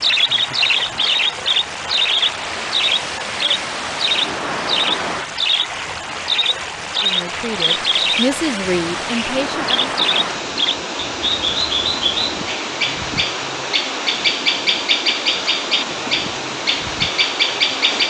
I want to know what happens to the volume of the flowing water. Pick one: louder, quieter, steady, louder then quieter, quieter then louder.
steady.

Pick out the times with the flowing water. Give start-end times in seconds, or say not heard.
0.0-18.0.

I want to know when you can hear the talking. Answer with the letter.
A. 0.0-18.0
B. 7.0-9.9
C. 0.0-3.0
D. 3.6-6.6
B.